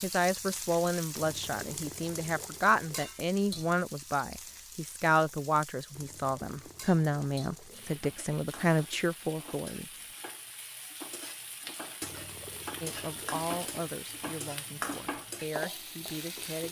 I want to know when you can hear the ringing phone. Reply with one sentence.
You can't hear the ringing phone here.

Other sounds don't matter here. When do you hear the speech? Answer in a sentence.
The speech can be heard from 0.0 to 9.8 s and from 12.8 to 16.6 s.